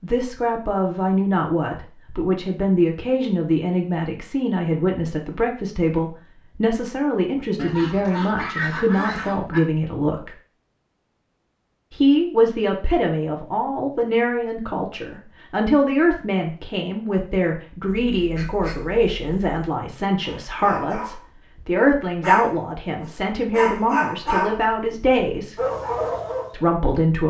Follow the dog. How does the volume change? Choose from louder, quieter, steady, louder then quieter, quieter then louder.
louder.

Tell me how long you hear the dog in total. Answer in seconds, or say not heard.
6 s.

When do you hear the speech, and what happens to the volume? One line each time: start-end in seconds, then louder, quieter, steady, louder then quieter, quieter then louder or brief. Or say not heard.
0.0-10.3 steady
11.9-25.6 steady
26.5-27.2 brief.